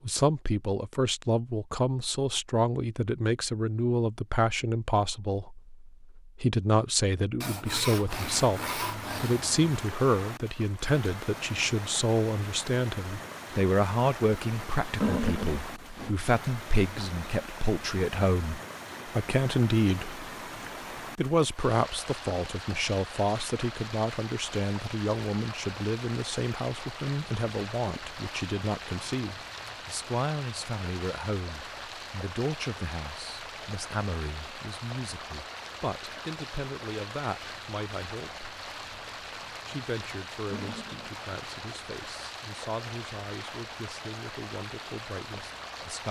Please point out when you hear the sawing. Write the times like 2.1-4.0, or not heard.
7.4-9.7.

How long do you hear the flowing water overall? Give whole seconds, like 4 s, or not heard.
38 s.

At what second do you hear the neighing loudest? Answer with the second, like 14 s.
15 s.